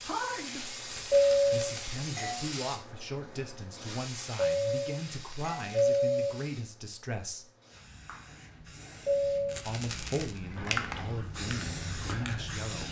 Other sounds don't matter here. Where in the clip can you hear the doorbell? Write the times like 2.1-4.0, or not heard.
1.1-2.5, 4.3-6.3, 9.1-9.7.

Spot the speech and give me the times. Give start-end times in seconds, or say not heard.
0.0-7.5, 9.7-12.8.